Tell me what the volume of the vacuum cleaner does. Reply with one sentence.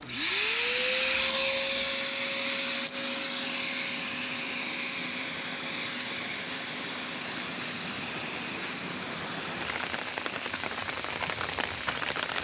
The loudness of the vacuum cleaner goes down.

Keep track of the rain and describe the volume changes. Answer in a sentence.
The volume of the rain goes up.